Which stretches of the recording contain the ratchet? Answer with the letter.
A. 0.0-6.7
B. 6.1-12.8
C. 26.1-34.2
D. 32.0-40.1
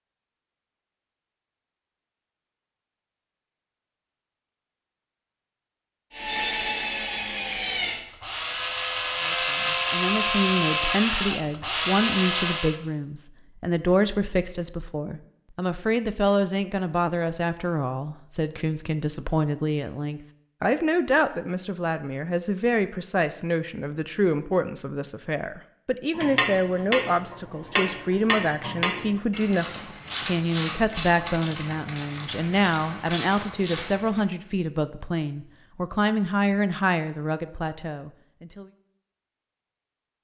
C.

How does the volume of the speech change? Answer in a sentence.
The volume of the speech stays about the same.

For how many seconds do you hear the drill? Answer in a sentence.
You can hear the drill for 7 seconds altogether.